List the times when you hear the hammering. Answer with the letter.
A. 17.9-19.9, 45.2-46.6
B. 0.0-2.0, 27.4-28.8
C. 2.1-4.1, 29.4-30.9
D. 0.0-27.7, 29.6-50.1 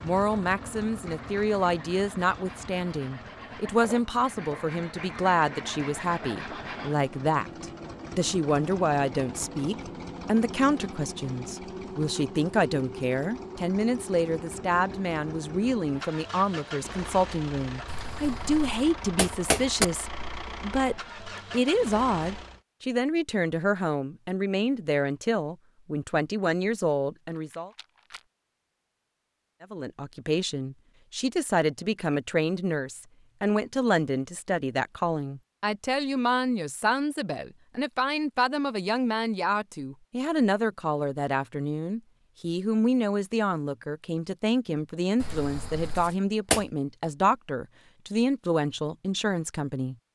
A.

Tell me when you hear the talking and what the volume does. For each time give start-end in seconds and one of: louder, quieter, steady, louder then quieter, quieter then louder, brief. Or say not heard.
0.0-27.7 steady
29.6-50.1 steady.